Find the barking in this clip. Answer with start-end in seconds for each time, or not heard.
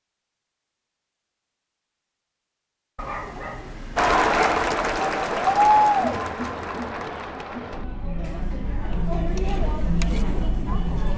3.0-5.0.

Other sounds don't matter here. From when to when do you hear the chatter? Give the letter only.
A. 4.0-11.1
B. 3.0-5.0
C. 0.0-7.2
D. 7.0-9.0
A.